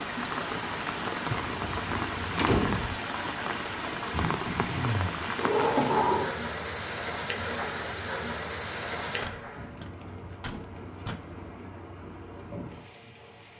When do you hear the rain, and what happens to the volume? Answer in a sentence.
The rain can be heard from 0.0 to 13.5 s, getting quieter.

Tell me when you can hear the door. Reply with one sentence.
The door can be heard from 1.3 to 3.0 s, from 5.3 to 6.3 s and from 9.2 to 11.2 s.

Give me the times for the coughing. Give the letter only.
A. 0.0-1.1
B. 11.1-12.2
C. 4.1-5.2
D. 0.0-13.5
C.